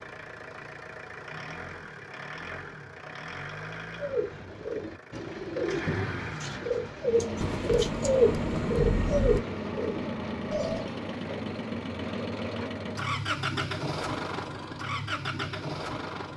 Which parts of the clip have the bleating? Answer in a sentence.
You can't hear the bleating here.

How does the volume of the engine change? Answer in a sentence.
The loudness of the engine goes up.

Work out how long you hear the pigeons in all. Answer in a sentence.
You can hear the pigeons for 7 seconds altogether.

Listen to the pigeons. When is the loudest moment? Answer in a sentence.
The volume of the pigeons peaks at 8 seconds.